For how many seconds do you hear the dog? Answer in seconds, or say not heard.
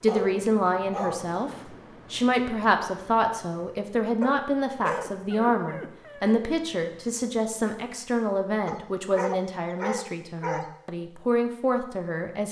6 s.